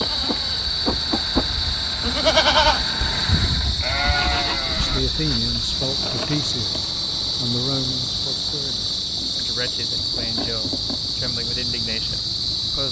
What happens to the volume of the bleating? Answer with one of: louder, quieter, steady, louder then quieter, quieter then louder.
louder then quieter.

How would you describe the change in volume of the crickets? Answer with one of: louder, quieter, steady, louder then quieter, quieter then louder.
steady.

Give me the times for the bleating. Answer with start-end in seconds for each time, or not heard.
0.0-5.4.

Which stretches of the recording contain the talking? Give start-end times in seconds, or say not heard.
4.8-12.8.